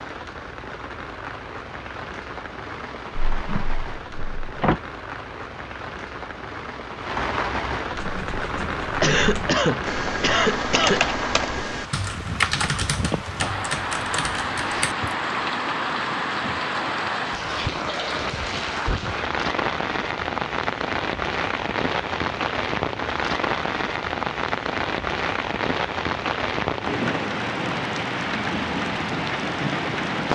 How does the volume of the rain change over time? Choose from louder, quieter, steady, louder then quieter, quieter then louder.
louder.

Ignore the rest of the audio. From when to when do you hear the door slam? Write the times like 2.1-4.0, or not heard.
3.1-4.8.